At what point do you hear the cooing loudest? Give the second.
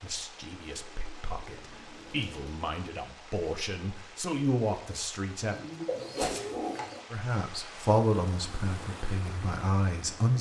6 s.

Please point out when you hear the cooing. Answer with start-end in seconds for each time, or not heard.
0.8-2.6, 5.5-7.0.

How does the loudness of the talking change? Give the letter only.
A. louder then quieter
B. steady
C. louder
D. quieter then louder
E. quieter
C.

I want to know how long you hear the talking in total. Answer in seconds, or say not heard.
9 s.